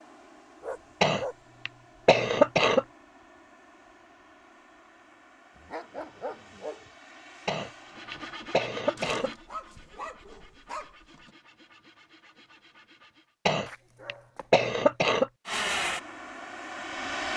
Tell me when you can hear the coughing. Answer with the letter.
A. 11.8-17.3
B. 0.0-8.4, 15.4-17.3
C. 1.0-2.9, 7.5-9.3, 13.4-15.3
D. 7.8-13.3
C.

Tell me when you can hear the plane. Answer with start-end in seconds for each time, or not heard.
0.0-8.4, 15.4-17.3.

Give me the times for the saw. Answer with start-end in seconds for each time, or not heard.
7.8-13.3.